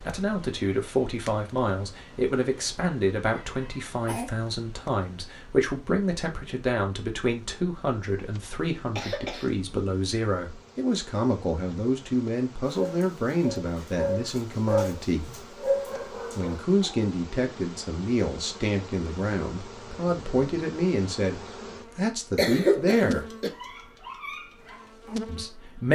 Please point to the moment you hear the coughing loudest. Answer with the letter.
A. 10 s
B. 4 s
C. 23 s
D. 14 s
C.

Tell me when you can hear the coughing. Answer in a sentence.
The coughing can be heard from 3.3 to 4.3 s, from 8.9 to 9.5 s and from 22.4 to 23.5 s.